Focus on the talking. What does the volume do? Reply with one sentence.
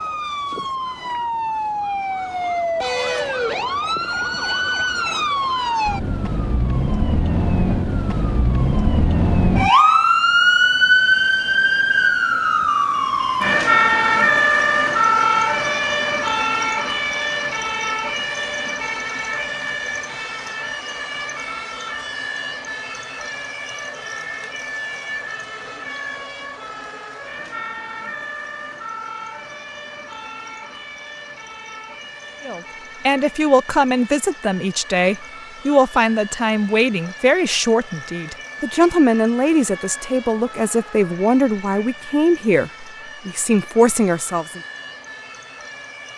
The loudness of the talking stays about the same.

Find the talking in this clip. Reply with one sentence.
The talking can be heard from 32.5 to 44.6 s.